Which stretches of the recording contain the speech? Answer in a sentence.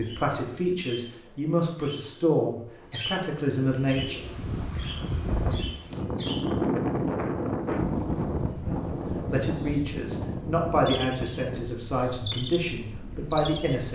The speech can be heard from 0.0 to 4.3 s and from 9.3 to 13.9 s.